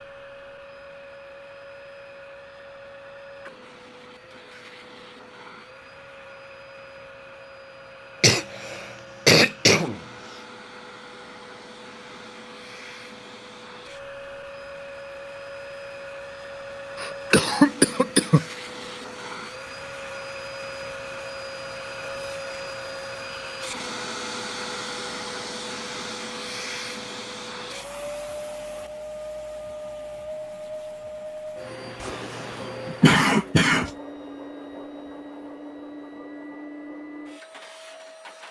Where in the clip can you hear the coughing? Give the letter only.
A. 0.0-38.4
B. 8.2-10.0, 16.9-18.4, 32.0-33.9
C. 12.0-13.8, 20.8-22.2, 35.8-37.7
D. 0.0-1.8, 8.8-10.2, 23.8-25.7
B.